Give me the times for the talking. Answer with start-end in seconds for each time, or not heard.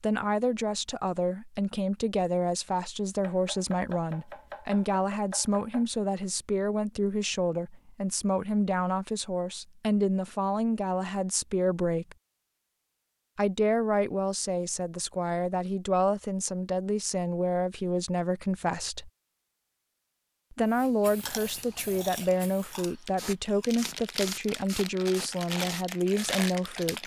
0.0-12.2, 13.3-19.1, 20.5-27.0.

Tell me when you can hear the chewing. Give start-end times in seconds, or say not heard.
21.1-27.0.